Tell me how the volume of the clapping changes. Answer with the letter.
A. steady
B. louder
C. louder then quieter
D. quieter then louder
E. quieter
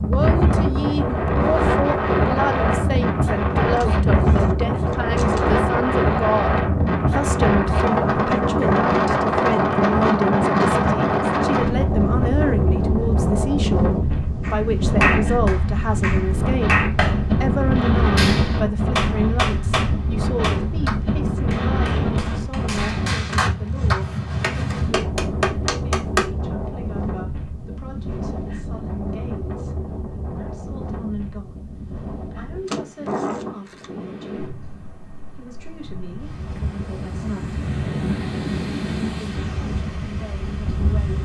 D.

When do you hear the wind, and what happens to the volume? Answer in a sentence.
You can hear the wind from 0.0 to 41.2 s, getting quieter.